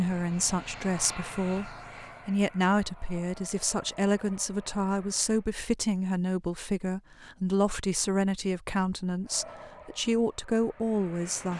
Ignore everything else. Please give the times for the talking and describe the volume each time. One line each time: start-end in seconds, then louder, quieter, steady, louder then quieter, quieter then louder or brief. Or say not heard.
0.0-11.5 steady.